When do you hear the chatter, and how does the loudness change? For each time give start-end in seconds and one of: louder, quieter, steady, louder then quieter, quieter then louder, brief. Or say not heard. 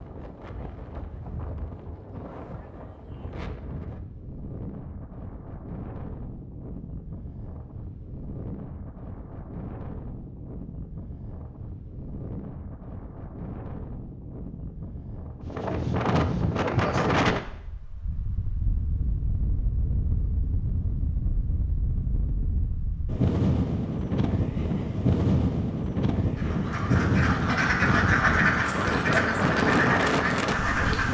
not heard.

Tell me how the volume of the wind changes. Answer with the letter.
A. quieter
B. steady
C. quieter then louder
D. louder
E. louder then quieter
D.